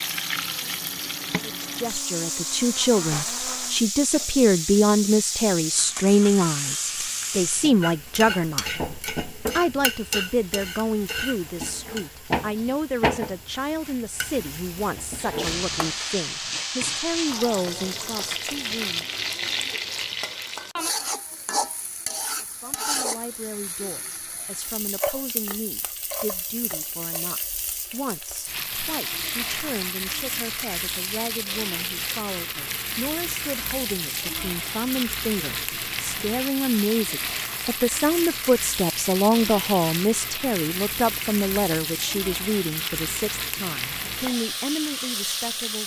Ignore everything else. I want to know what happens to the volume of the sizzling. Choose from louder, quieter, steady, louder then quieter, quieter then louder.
steady.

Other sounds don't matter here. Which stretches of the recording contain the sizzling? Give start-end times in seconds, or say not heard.
0.0-45.8.